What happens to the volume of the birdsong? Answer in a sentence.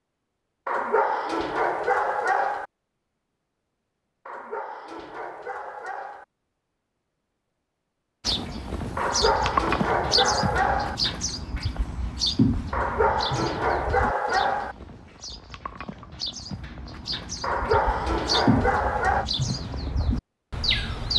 The volume of the birdsong goes down, then up.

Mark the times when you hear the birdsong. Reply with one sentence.
You can hear the birdsong from 8.2 to 21.1 s.